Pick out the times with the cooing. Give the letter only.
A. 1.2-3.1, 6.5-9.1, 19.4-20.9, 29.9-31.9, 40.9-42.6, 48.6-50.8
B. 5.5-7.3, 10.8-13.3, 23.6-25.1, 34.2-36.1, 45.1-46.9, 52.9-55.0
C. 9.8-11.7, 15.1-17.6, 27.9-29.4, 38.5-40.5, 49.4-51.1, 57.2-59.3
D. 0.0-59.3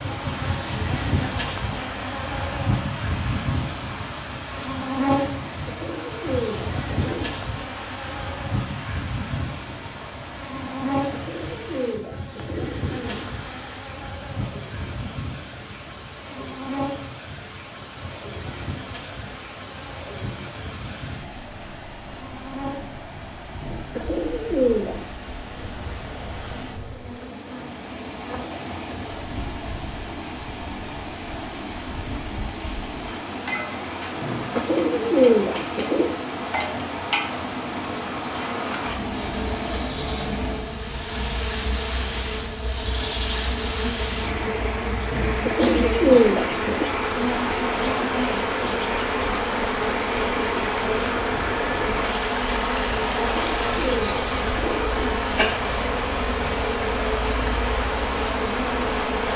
B.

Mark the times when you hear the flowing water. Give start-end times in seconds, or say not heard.
0.0-59.3.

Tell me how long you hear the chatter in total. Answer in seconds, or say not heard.
not heard.